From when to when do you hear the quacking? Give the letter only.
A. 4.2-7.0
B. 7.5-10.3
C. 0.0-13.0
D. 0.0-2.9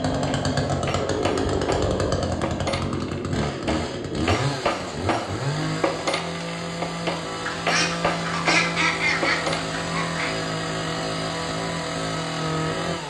B.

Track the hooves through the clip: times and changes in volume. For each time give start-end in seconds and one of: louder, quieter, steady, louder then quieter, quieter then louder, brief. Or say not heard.
not heard.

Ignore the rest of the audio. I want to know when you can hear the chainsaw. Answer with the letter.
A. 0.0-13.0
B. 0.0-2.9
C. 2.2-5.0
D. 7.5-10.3
A.